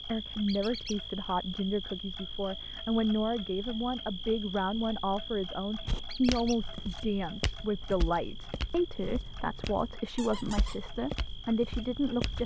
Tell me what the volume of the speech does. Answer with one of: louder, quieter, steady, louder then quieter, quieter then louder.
steady.